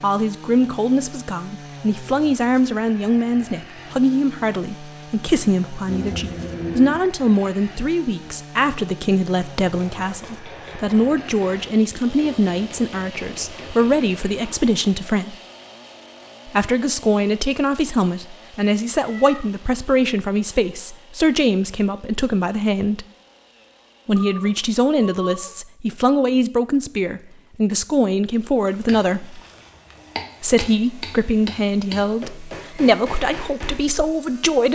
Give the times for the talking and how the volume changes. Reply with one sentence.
You can hear the talking from 0.0 to 15.3 s, at a steady volume; from 16.4 to 23.1 s, at a steady volume; from 24.1 to 29.4 s, at a steady volume; and from 30.4 to 34.7 s, at a steady volume.